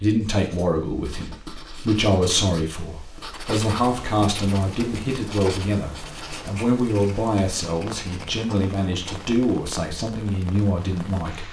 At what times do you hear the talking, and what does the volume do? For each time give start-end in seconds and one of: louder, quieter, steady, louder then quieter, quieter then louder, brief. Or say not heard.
0.0-11.4 steady.